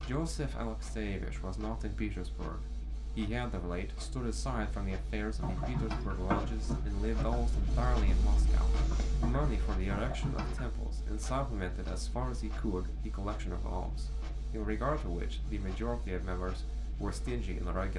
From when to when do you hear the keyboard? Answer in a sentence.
The keyboard can be heard from 5.4 to 10.7 s.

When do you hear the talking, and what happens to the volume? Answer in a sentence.
The talking can be heard from 0.0 to 17.9 s, at a steady volume.